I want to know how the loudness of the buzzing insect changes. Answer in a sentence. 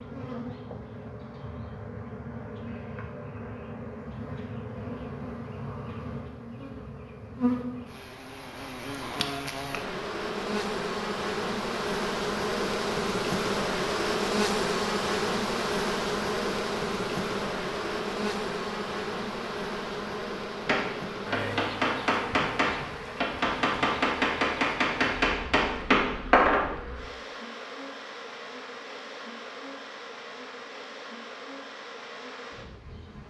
The loudness of the buzzing insect goes up, then down.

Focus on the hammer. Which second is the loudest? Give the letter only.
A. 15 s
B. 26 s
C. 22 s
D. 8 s
B.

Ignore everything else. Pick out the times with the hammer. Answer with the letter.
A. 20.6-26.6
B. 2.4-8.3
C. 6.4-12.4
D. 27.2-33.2
A.